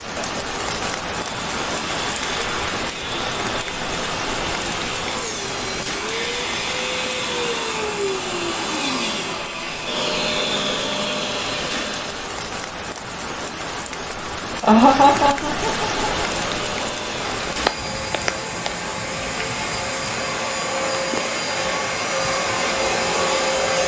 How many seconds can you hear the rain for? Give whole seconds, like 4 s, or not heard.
24 s.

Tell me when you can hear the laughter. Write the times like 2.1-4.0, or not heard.
14.6-16.1.